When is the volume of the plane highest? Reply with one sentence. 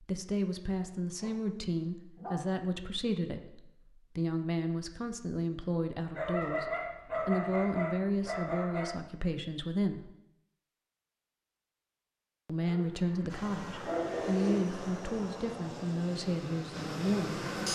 The loudest moment of the plane is at 17 seconds.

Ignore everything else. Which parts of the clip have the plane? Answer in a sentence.
The plane can be heard from 13.2 to 17.7 s.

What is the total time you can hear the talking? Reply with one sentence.
The talking can be heard for 15 seconds in total.